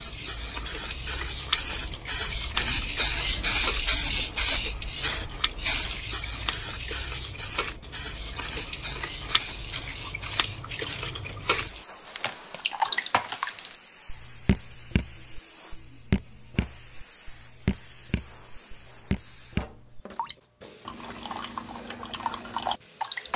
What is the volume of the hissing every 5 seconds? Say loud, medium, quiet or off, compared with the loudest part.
loud, medium, quiet, quiet, quiet.